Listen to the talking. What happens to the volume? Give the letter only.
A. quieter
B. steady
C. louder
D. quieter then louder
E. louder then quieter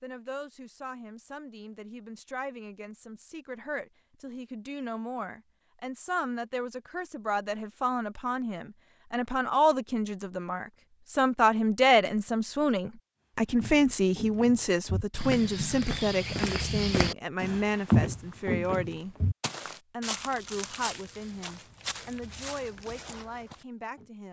E.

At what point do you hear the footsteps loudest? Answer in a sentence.
The loudest moment of the footsteps is at 18 seconds.